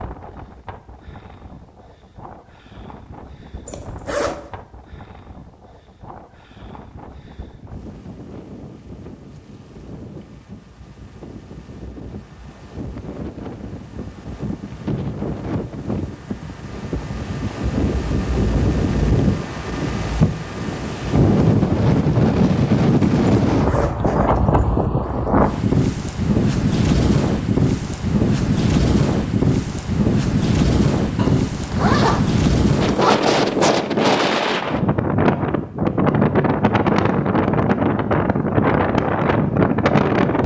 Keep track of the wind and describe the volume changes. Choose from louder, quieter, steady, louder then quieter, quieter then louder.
louder.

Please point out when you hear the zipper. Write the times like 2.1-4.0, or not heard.
3.6-4.5, 23.5-24.9, 31.1-33.1.